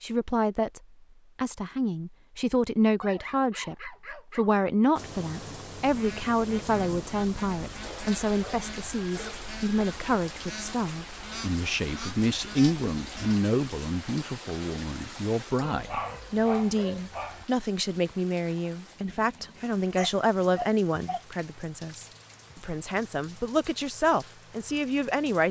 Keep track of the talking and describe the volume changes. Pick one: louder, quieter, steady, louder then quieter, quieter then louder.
steady.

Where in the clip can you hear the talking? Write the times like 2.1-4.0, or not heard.
0.0-25.4.